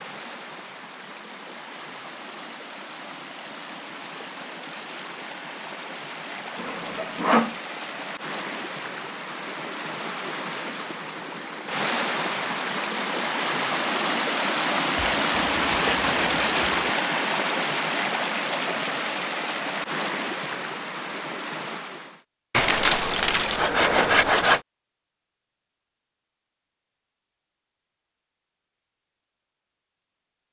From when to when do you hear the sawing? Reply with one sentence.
You can hear the sawing from 6.5 to 7.5 s, from 14.9 to 16.8 s and from 22.5 to 24.6 s.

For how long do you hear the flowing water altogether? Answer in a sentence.
The flowing water can be heard for 22 seconds in total.